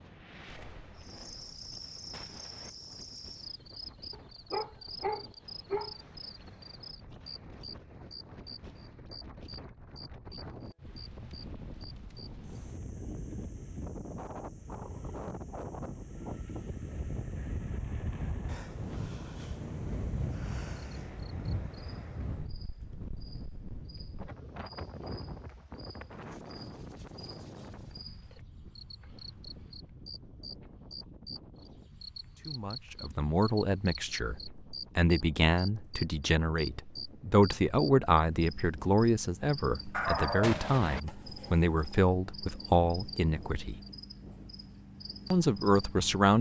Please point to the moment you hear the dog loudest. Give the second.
40 s.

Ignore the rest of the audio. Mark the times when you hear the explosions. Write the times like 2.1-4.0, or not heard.
2.1-2.7, 40.4-41.0.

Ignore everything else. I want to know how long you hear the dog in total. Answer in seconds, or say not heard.
4 s.